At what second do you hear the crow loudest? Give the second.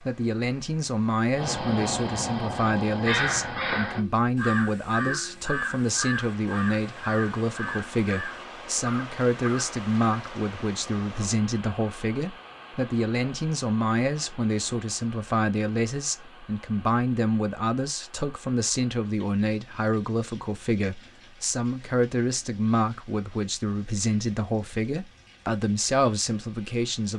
3 s.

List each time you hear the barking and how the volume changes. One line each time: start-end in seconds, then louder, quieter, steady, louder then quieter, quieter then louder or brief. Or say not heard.
not heard.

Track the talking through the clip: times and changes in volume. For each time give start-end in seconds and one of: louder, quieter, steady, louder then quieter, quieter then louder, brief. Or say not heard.
0.0-27.1 steady.